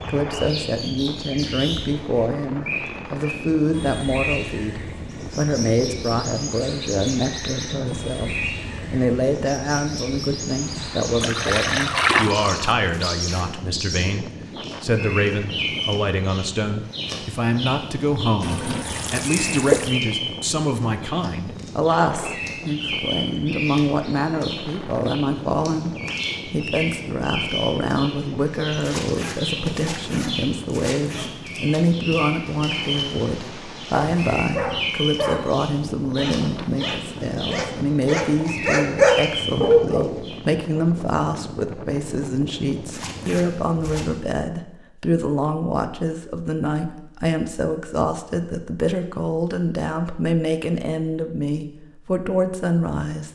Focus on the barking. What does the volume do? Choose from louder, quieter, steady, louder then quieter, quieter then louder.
quieter then louder.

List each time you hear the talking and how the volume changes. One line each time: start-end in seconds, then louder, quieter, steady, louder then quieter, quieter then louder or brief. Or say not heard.
0.0-53.3 steady.